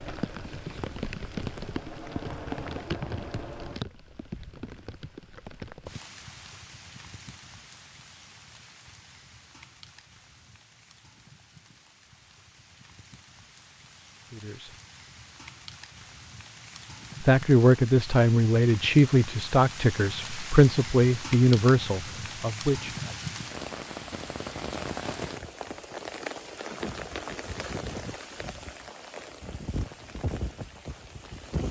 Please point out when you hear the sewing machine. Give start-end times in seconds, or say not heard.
0.0-3.8.